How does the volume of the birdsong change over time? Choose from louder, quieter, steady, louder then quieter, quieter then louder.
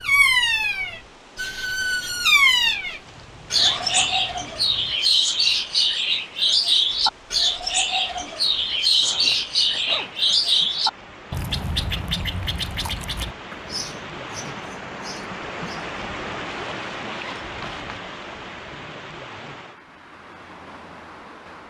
quieter.